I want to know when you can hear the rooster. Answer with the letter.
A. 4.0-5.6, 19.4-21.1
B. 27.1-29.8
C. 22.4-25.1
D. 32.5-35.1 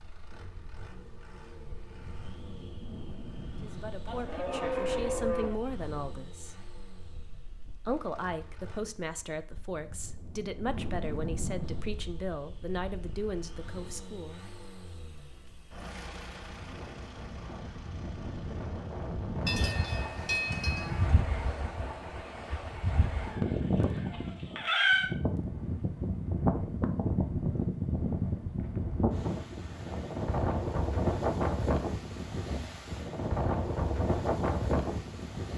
C.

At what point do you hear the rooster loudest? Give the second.
25 s.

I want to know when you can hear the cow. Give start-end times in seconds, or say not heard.
4.0-5.6, 19.4-21.1.